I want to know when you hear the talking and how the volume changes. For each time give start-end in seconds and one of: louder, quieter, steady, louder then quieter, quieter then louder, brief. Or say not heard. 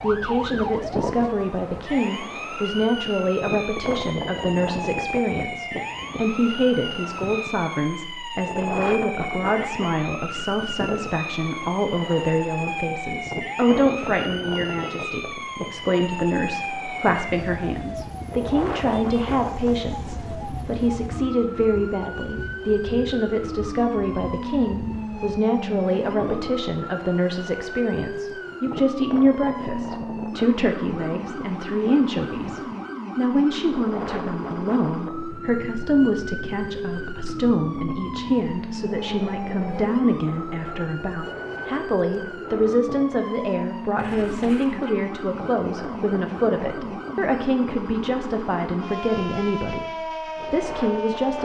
0.0-51.4 steady.